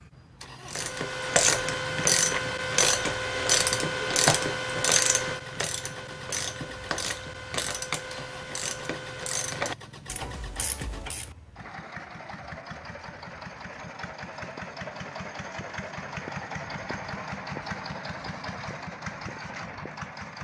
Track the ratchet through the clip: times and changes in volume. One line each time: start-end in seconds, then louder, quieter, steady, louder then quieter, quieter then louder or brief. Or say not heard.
0.7-11.3 quieter.